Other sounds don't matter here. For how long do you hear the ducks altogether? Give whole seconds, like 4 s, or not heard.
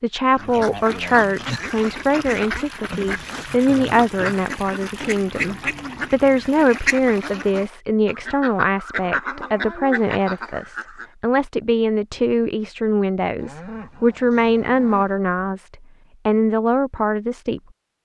11 s.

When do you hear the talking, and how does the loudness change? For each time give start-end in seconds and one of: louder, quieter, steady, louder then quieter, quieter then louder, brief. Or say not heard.
0.0-18.0 steady.